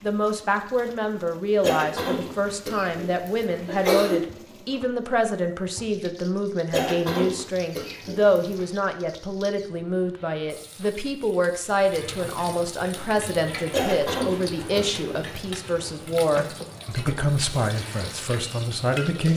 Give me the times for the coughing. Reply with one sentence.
The coughing can be heard from 1.6 to 4.2 s, from 6.7 to 8.6 s and from 13.7 to 15.2 s.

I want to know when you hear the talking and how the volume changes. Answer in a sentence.
You can hear the talking from 0.0 to 19.3 s, at a steady volume.